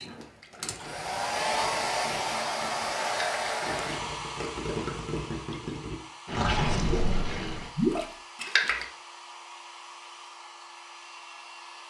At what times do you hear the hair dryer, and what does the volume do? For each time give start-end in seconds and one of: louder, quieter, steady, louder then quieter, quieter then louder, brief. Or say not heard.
0.0-11.8 quieter.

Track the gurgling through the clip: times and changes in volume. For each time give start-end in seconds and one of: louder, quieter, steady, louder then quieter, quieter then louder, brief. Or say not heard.
0.4-8.8 louder.